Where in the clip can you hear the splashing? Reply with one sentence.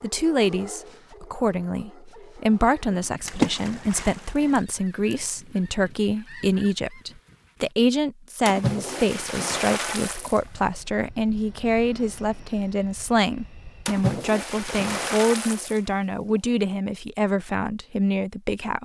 The splashing can be heard from 3.2 to 4.7 s, from 8.4 to 10.5 s and from 13.8 to 16.5 s.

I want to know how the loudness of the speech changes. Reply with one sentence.
The volume of the speech stays about the same.